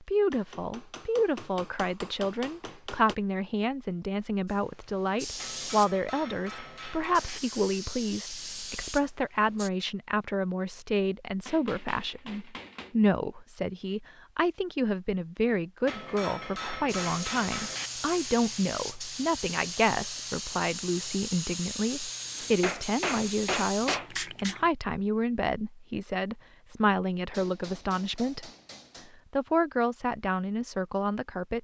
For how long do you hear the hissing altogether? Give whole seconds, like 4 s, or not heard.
13 s.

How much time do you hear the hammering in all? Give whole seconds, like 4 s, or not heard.
12 s.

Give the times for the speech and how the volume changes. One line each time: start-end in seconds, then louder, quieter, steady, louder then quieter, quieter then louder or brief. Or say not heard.
0.0-28.5 steady
29.3-31.5 brief.